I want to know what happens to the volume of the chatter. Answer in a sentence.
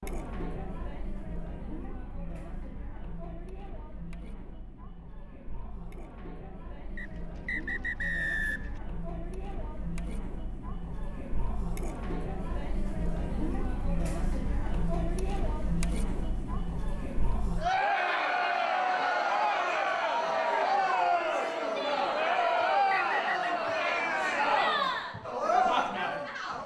The loudness of the chatter goes up.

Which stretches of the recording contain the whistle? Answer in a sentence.
The whistle can be heard from 7.0 to 8.7 s and from 22.4 to 23.6 s.